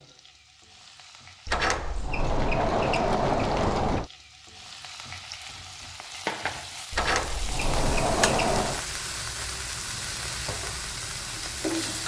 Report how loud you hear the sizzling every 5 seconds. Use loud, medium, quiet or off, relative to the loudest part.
quiet, loud, loud.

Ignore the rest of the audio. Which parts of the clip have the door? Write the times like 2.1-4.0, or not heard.
1.4-4.1, 6.9-8.8.